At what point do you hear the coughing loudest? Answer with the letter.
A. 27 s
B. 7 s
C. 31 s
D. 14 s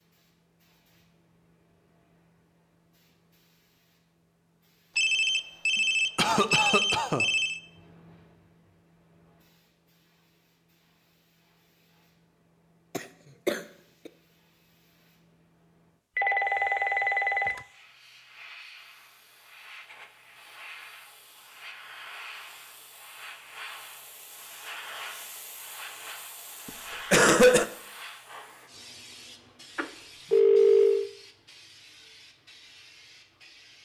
A.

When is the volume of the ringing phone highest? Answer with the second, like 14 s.
31 s.